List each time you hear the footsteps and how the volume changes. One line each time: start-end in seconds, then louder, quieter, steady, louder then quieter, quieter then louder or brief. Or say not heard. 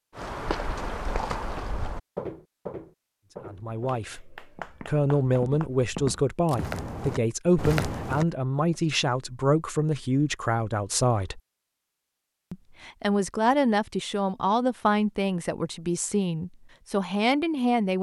0.1-8.2 quieter then louder.